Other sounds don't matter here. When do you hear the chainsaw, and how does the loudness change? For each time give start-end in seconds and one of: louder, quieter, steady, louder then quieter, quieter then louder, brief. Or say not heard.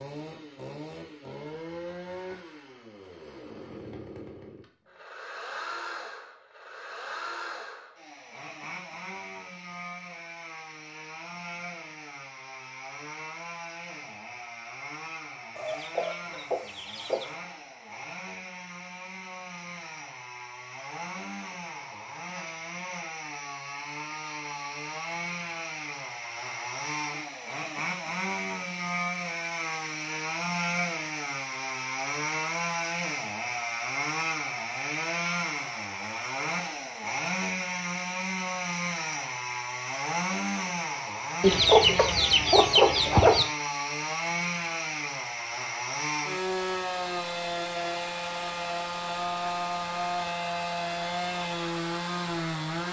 0.0-52.8 louder.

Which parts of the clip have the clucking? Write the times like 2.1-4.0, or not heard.
15.6-17.3, 41.4-43.5.